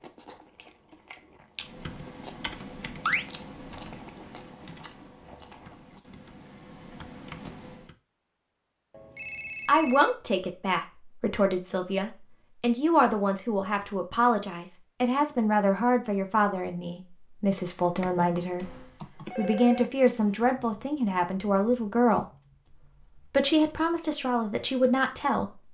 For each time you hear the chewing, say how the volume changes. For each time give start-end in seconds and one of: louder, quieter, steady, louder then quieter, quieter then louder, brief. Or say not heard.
0.0-6.0 louder then quieter.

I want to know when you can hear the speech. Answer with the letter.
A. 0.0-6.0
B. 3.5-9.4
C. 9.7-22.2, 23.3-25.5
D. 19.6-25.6
C.